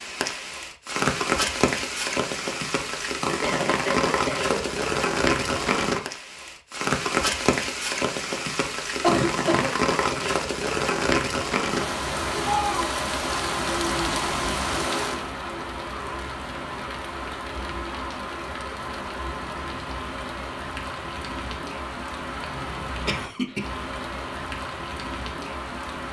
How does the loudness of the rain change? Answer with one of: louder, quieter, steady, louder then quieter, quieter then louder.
quieter.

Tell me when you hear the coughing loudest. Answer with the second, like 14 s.
9 s.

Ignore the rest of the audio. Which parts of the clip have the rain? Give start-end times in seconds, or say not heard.
0.0-26.0.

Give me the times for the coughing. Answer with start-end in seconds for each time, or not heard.
3.4-4.7, 9.0-9.7, 22.4-23.6.